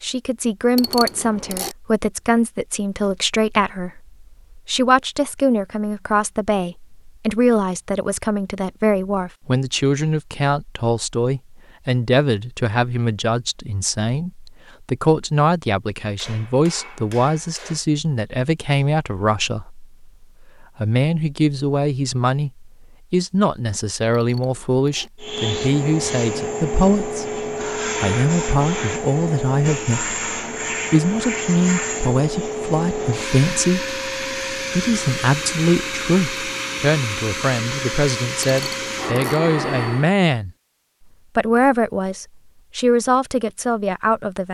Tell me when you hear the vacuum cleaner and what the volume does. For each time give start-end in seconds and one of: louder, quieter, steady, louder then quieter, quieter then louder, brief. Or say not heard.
25.2-40.1 steady.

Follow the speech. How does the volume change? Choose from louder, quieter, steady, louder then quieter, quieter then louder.
steady.